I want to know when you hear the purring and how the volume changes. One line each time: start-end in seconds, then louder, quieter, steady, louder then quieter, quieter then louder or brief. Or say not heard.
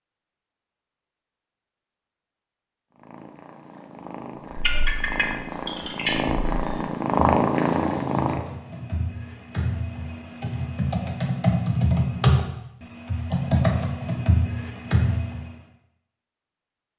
2.9-8.4 louder.